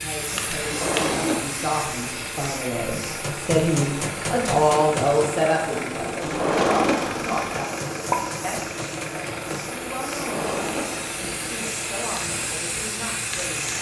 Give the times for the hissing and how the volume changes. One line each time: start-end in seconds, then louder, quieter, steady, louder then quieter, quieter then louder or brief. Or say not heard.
0.0-13.7 quieter then louder.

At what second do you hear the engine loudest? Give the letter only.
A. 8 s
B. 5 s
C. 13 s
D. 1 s
A.